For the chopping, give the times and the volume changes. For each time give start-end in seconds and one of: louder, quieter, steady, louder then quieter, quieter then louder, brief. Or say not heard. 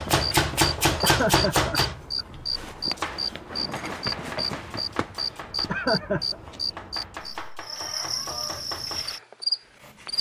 0.0-10.1 quieter.